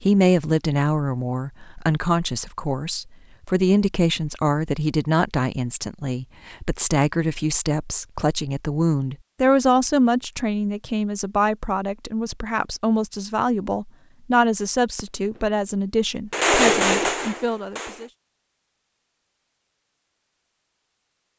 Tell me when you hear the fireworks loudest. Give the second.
17 s.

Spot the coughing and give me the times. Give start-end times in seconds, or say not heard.
not heard.